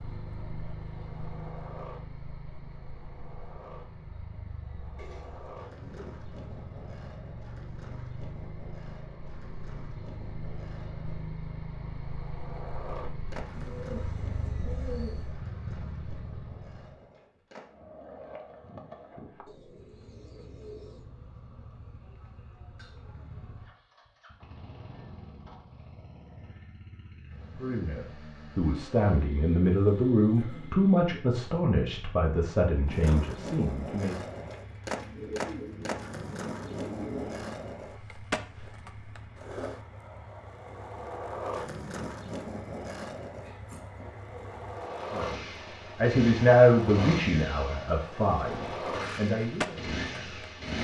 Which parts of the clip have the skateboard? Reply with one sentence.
The skateboard can be heard from 0.0 to 19.4 s and from 32.9 to 50.8 s.